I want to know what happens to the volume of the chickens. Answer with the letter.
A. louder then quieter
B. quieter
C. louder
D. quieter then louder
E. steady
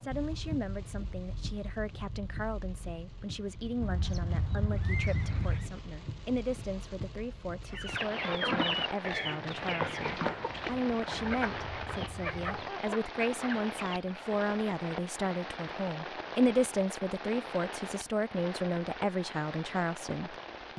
B.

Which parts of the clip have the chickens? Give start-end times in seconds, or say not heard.
7.7-14.4.